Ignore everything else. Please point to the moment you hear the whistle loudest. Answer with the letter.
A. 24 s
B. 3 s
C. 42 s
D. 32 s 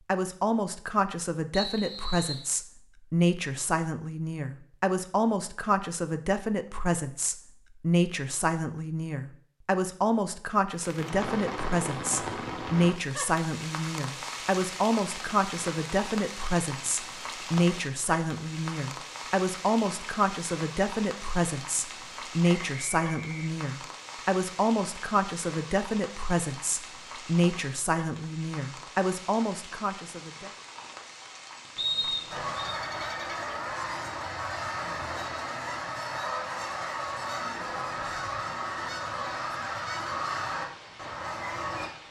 D.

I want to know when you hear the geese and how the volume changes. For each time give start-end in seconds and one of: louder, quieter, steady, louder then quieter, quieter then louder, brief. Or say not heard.
32.3-41.9 steady.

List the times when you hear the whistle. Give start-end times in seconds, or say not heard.
1.5-2.5, 22.6-23.6, 31.8-32.8.